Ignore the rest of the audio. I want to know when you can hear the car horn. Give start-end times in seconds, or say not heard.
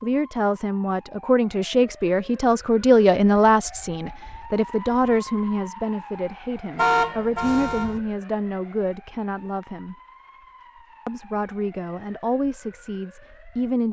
6.8-8.0.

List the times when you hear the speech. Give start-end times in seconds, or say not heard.
0.0-9.9, 11.1-13.8.